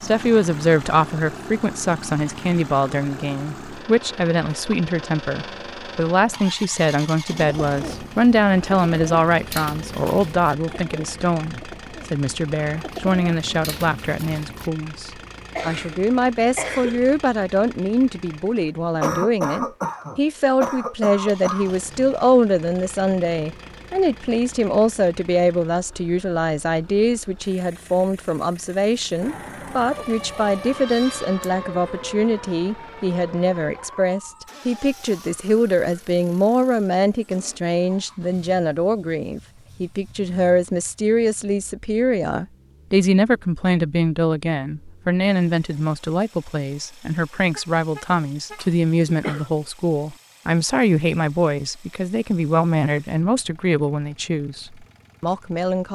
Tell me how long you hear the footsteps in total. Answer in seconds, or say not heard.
not heard.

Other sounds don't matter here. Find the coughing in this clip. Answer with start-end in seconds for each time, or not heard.
15.6-17.0, 19.0-21.8, 48.1-49.5.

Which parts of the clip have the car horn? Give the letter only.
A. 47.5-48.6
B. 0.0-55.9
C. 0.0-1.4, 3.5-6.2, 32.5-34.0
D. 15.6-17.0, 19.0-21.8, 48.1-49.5
A.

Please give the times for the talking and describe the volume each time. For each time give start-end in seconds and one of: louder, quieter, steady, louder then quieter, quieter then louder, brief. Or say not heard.
0.0-55.9 steady.